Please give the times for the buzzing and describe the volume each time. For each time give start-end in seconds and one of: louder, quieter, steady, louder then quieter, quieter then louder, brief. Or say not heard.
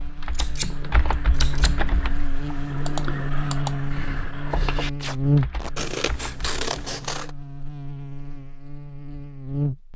0.0-9.9 louder then quieter.